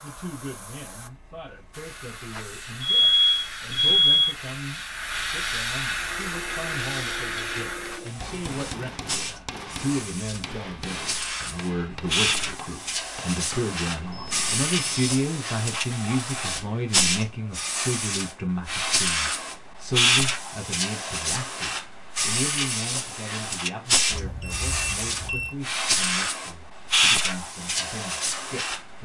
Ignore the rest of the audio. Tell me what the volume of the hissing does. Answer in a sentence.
The loudness of the hissing goes up.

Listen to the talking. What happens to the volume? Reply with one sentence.
The volume of the talking goes up, then down.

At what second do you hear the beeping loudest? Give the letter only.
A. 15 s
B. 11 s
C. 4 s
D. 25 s
C.